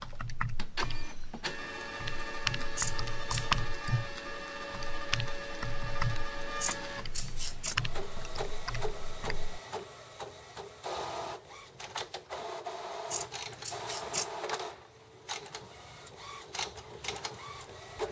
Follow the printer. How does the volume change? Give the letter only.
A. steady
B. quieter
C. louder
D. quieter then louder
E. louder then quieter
A.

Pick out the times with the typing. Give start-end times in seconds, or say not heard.
0.0-9.6.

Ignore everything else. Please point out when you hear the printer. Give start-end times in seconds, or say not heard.
0.0-18.0.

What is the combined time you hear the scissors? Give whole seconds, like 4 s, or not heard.
3 s.